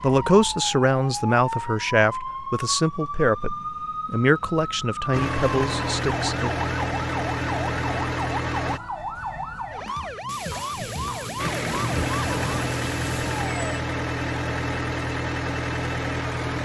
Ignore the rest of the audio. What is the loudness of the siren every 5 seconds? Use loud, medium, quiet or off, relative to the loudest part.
loud, loud, loud, off.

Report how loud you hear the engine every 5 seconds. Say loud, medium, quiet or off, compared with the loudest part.
off, loud, loud, loud.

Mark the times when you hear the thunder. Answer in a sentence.
The thunder can be heard from 10.2 to 13.6 s.